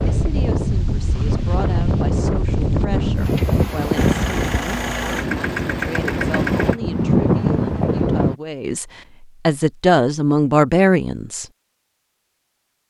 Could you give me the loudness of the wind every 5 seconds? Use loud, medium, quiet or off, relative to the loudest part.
loud, loud, off.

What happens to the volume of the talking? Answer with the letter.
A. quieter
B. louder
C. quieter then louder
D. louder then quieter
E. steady
B.